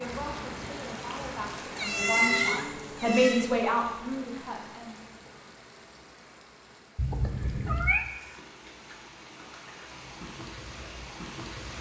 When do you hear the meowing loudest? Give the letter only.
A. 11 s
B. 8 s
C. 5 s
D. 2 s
D.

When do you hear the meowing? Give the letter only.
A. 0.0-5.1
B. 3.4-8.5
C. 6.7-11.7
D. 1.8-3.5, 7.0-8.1
D.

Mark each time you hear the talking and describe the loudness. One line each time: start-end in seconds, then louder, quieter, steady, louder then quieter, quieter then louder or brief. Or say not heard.
0.0-5.1 louder then quieter.